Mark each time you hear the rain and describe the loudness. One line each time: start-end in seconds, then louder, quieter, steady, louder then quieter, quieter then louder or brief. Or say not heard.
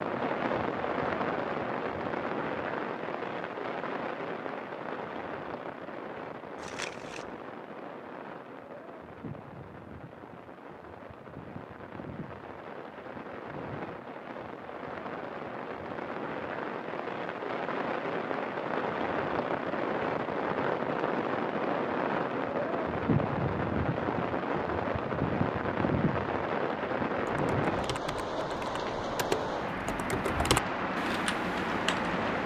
0.0-32.4 quieter then louder.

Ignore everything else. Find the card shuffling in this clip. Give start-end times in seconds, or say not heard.
6.5-7.4.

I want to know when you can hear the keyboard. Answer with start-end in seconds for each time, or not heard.
27.3-32.2.